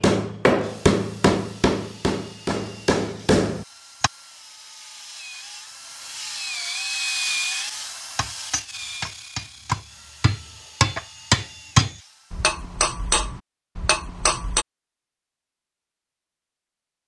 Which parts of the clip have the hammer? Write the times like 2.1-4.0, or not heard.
0.0-4.1, 8.2-14.7.